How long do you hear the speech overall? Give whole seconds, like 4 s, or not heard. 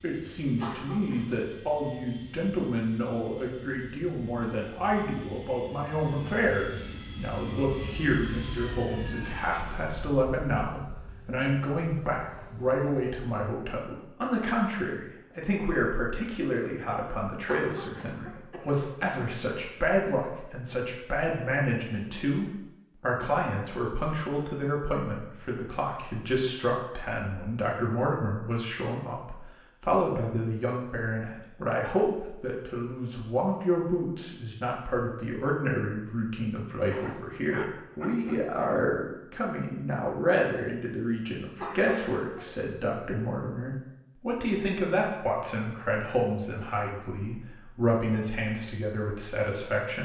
50 s.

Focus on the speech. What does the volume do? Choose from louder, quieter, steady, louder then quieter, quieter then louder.
steady.